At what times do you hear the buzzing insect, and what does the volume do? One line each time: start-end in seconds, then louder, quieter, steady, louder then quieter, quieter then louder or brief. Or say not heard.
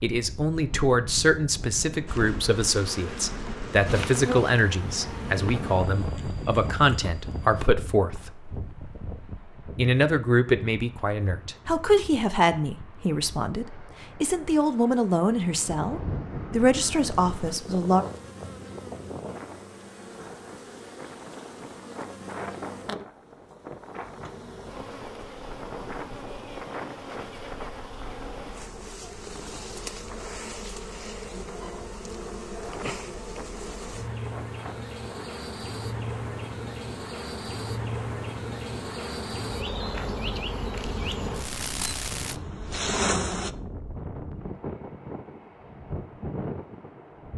2.0-7.7 louder then quieter
17.1-43.5 louder.